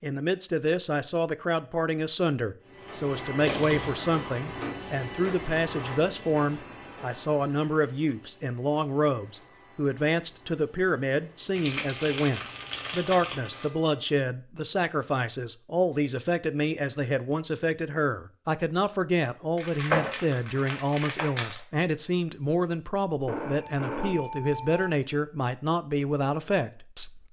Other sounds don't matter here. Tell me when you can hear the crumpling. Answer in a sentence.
You can hear the crumpling from 3.4 to 4.0 s, from 11.6 to 13.7 s and from 19.6 to 21.6 s.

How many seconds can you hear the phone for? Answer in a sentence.
The phone can be heard for 2 seconds in total.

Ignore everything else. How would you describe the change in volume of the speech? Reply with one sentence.
The loudness of the speech stays about the same.